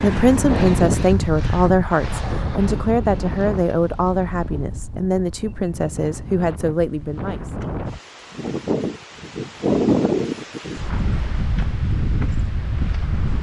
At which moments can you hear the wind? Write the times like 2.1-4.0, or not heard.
0.0-13.3.